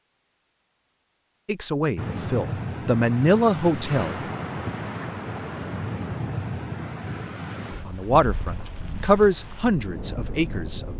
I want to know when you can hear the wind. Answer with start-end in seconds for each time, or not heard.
1.9-10.9.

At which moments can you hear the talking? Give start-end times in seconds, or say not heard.
1.4-4.2, 7.8-10.9.